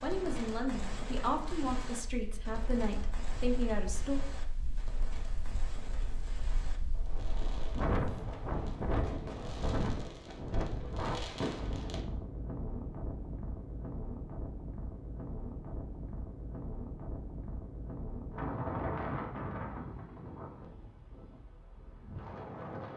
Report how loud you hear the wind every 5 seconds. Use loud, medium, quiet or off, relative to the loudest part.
quiet, loud, loud, loud, medium.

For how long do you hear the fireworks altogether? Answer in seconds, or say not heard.
12 s.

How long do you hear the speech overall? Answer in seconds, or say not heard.
4 s.